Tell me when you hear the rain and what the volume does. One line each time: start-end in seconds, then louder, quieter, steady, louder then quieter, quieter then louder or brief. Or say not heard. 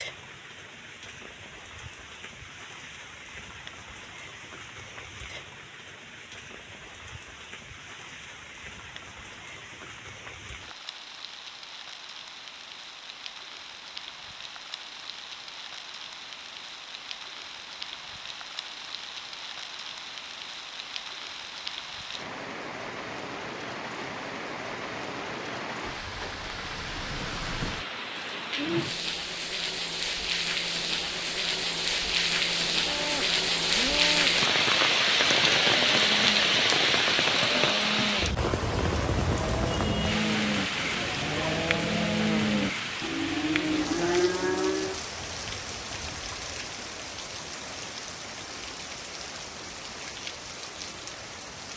0.0-51.7 louder then quieter.